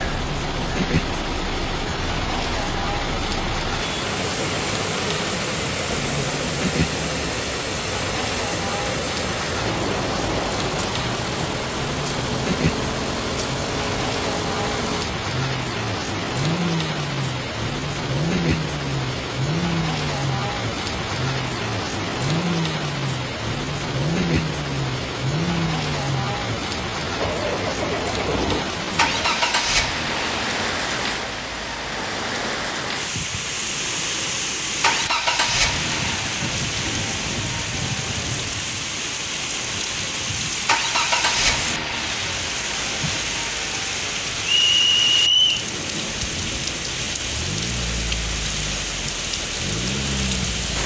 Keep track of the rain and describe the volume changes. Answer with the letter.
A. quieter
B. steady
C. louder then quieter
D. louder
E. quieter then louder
B.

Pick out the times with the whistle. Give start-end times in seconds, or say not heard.
44.5-45.7.